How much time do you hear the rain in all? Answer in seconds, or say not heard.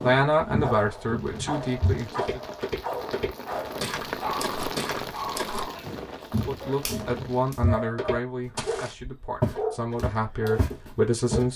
8 s.